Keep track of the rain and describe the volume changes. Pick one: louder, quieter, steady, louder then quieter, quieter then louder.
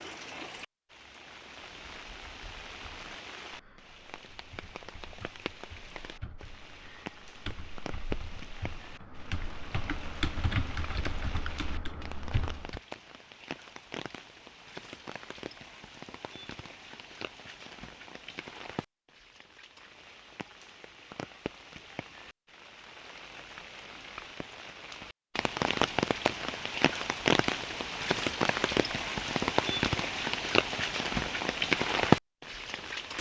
louder.